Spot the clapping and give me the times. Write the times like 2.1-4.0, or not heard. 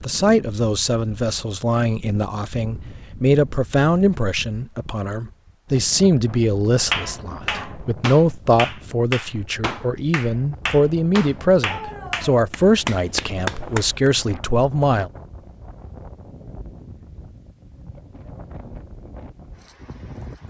6.9-14.1.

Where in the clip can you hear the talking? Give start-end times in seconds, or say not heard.
0.0-15.1.